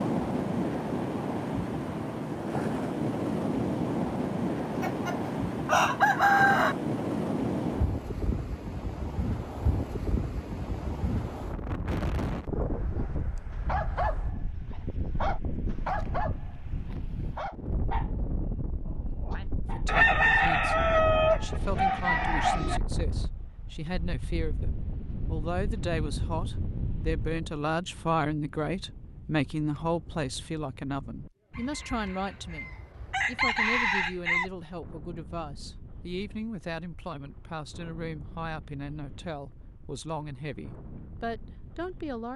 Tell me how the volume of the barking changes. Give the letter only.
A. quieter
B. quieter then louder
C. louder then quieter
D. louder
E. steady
A.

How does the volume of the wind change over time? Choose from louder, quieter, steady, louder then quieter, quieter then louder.
quieter.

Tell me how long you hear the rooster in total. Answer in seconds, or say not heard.
8 s.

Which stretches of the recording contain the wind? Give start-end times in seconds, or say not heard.
0.0-42.3.